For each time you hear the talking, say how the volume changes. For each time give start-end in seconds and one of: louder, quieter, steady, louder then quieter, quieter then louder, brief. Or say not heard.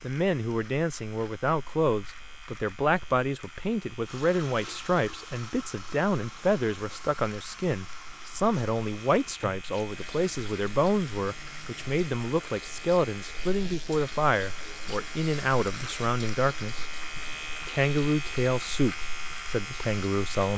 0.0-16.9 steady
17.6-20.5 brief.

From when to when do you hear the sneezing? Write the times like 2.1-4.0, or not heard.
not heard.